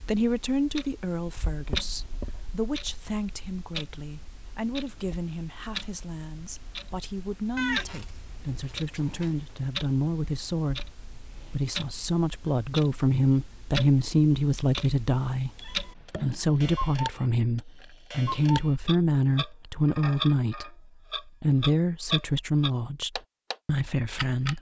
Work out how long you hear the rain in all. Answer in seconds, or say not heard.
not heard.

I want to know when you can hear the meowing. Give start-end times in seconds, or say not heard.
7.5-9.6, 15.6-16.6.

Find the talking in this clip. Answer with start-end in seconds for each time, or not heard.
0.0-20.7, 21.4-24.5.